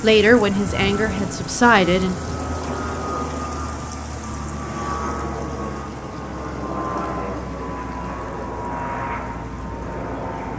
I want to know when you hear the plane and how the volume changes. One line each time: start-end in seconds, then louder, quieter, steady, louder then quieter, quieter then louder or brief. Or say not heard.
0.0-10.5 steady.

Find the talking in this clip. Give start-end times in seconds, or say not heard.
0.0-2.1.